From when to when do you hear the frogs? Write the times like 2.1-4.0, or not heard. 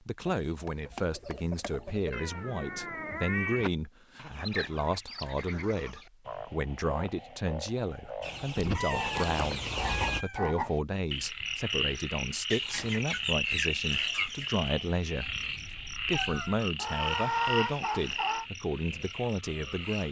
5.2-20.0.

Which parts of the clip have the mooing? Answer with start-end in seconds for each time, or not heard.
not heard.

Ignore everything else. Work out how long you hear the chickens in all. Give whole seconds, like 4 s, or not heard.
9 s.